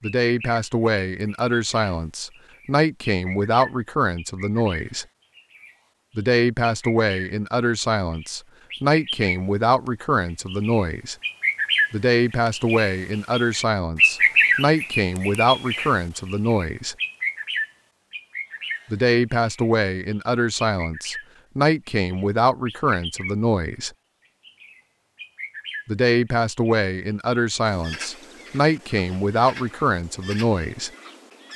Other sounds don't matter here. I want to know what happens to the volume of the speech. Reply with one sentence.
The volume of the speech stays about the same.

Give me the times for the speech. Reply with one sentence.
The speech can be heard from 0.0 to 5.0 s, from 6.2 to 11.2 s, from 11.9 to 16.9 s, from 18.9 to 23.9 s and from 25.9 to 30.9 s.